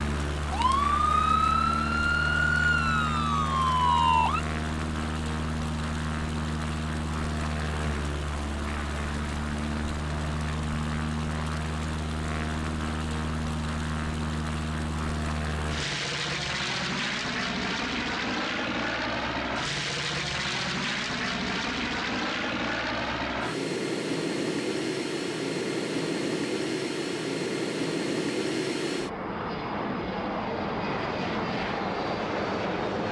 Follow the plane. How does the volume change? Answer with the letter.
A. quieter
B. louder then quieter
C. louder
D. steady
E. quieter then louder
D.